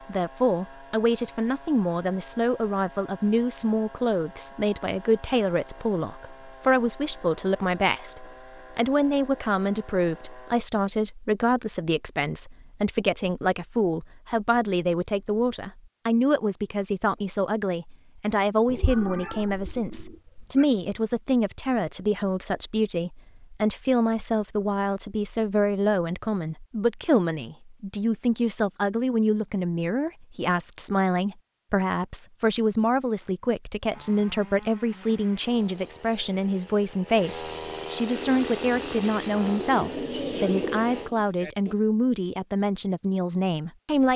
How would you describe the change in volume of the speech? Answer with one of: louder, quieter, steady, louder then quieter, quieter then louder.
steady.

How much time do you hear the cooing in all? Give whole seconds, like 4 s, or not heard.
4 s.